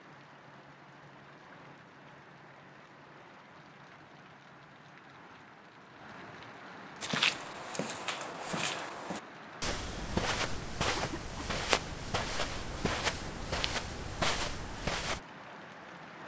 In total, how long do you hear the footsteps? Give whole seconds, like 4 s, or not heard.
8 s.